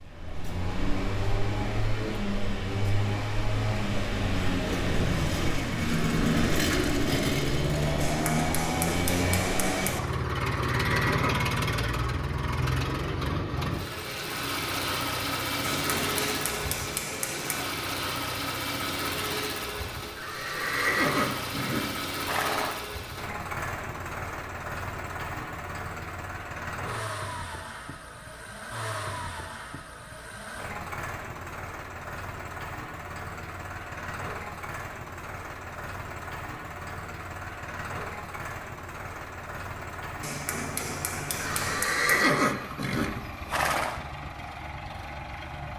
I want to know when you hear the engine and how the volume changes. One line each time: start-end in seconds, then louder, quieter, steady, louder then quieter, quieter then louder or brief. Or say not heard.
0.0-45.7 quieter.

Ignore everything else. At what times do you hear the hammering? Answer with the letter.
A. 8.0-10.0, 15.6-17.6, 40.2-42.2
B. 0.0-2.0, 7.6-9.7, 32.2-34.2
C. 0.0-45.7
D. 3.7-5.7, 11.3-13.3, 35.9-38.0
A.